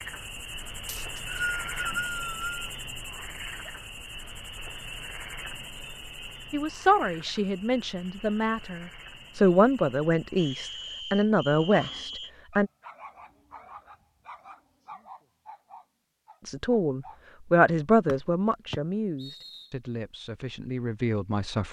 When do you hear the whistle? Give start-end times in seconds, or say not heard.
0.8-2.7, 10.3-12.3, 18.1-19.6.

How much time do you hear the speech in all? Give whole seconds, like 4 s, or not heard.
11 s.